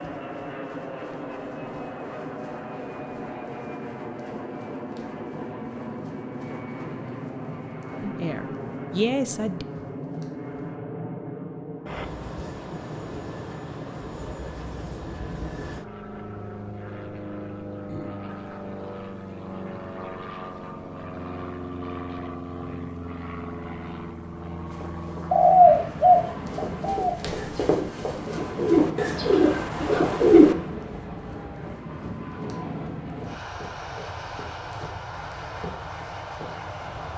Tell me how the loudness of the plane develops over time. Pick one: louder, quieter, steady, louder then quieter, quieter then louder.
steady.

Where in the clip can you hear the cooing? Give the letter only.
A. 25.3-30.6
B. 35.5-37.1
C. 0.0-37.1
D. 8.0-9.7
A.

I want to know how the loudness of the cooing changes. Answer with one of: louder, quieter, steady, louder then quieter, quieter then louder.
quieter then louder.